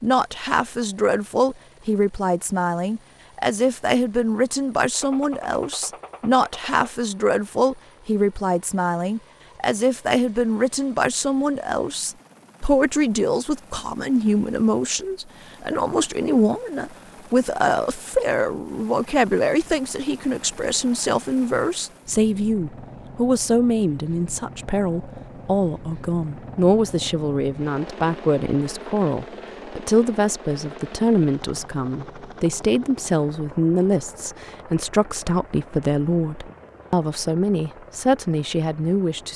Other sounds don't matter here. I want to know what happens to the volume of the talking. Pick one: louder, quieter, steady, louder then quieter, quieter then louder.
steady.